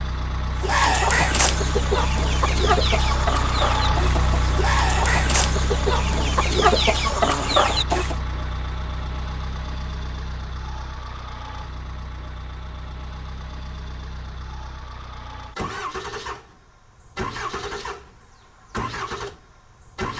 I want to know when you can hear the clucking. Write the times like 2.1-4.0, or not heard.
0.6-8.2.